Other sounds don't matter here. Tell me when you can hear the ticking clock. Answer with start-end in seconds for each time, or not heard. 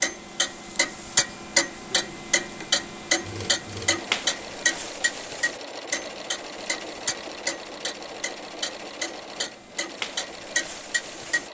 0.0-11.4.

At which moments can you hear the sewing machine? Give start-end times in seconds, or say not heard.
1.9-11.4.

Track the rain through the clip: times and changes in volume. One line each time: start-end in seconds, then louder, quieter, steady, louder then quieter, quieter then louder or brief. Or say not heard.
not heard.